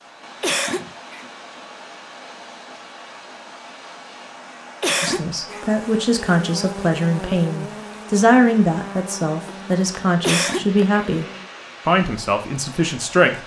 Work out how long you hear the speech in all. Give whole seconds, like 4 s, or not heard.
8 s.